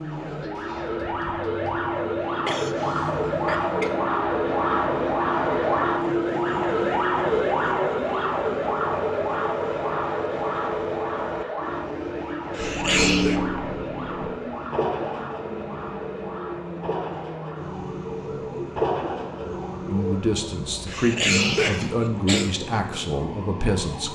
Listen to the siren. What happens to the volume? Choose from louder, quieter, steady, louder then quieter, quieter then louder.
quieter.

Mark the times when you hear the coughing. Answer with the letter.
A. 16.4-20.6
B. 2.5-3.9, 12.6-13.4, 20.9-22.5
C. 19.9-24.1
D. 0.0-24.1
B.